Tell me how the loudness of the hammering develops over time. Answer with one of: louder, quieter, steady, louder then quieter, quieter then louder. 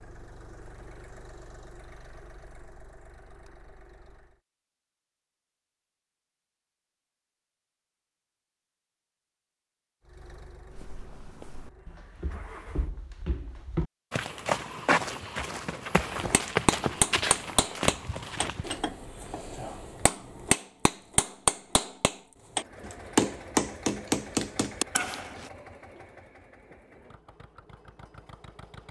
quieter then louder.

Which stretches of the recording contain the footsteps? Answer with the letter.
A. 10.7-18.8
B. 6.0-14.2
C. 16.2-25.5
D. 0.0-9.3
A.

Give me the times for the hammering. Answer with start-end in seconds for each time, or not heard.
16.2-25.5.